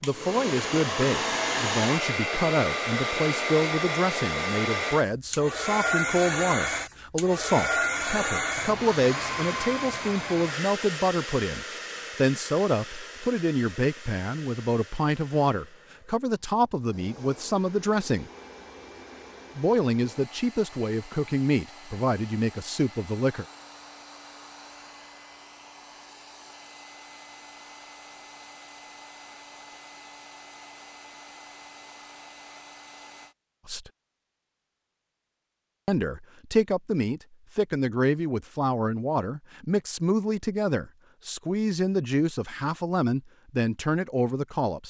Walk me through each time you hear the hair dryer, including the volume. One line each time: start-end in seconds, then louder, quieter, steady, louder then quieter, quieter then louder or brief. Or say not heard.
0.0-33.4 quieter.